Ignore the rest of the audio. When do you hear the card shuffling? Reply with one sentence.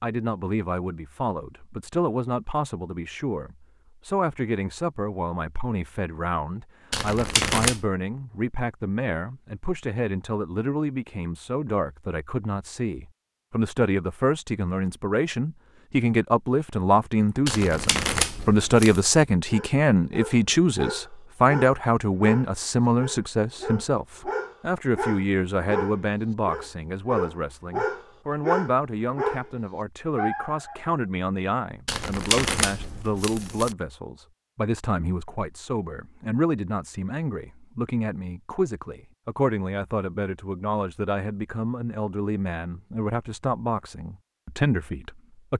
You can hear the card shuffling from 6.9 to 7.8 s, from 17.4 to 19.0 s and from 31.9 to 33.8 s.